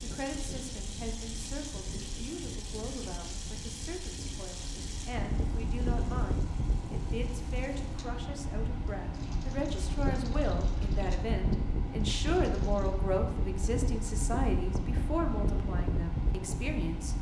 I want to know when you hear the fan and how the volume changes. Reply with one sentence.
You can hear the fan from 0.0 to 17.1 s, getting louder.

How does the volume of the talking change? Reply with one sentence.
The volume of the talking goes up.